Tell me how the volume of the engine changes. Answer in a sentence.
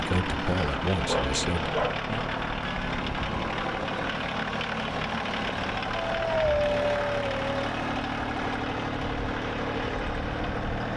The loudness of the engine stays about the same.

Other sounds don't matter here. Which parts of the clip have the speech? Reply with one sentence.
You can hear the speech from 0.0 to 2.3 s.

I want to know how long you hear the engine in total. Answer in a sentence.
The engine can be heard for 11 seconds in total.